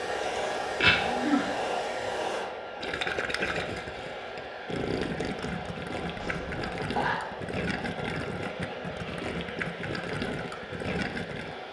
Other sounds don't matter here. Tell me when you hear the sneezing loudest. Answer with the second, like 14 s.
1 s.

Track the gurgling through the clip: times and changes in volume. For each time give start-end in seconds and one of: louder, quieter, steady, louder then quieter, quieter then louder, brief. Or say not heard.
2.8-11.6 steady.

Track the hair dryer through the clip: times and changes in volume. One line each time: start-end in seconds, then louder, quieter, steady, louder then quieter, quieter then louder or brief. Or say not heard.
0.0-11.6 quieter.